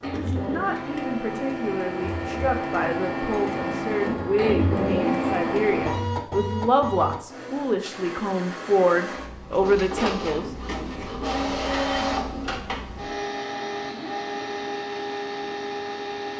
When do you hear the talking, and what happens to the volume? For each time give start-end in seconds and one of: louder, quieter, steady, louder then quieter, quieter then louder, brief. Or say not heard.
0.0-10.5 louder.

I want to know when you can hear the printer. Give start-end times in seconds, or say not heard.
0.0-16.3.